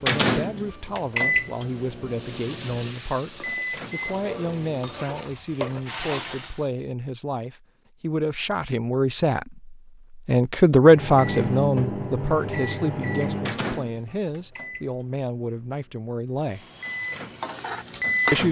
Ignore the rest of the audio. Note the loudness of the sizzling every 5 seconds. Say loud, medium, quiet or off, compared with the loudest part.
medium, loud, off, loud.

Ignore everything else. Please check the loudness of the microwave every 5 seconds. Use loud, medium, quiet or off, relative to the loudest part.
loud, off, loud, loud.